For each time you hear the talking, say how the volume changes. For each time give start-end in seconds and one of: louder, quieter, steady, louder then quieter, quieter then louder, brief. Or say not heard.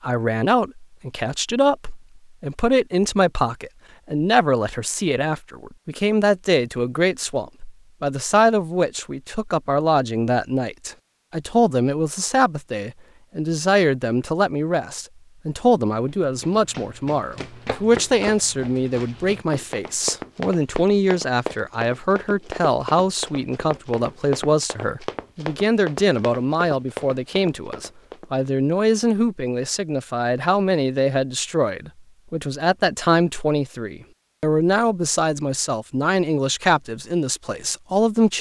0.0-38.3 steady.